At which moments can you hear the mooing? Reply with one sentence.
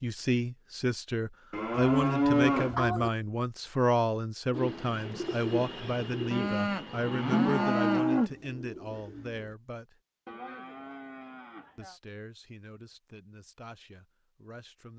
You can hear the mooing from 1.5 to 3.1 s, from 6.3 to 8.3 s and from 10.2 to 11.9 s.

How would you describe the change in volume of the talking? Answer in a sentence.
The volume of the talking goes down.